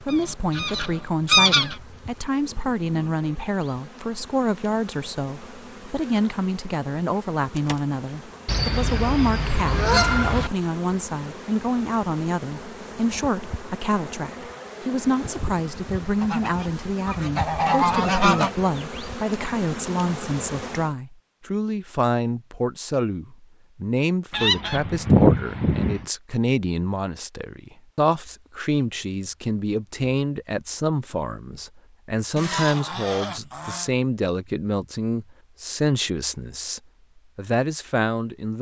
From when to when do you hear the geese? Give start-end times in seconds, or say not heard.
0.1-1.8, 8.4-10.5, 16.2-18.6, 24.3-26.1, 32.4-33.9.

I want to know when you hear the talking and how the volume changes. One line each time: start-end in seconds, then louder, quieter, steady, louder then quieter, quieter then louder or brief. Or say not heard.
0.0-38.5 steady.